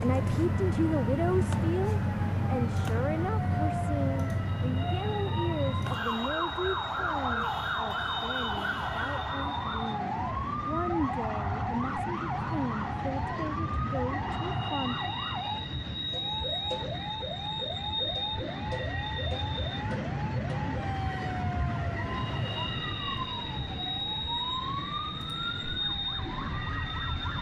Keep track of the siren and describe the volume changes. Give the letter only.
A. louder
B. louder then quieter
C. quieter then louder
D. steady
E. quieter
E.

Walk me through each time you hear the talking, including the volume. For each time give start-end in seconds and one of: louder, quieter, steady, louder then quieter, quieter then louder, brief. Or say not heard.
0.0-15.1 quieter.